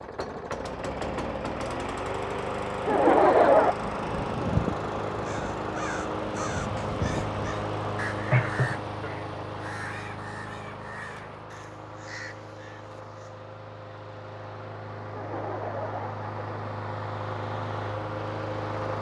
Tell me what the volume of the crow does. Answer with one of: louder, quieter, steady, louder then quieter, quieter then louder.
quieter.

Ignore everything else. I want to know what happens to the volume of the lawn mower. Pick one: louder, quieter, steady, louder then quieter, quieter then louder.
quieter then louder.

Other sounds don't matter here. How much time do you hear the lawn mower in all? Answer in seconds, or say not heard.
19 s.